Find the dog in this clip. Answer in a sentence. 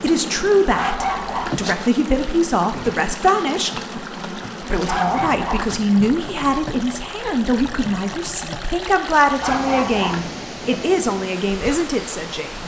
You can hear the dog from 0.7 to 1.6 s, from 4.8 to 5.8 s and from 9.4 to 10.3 s.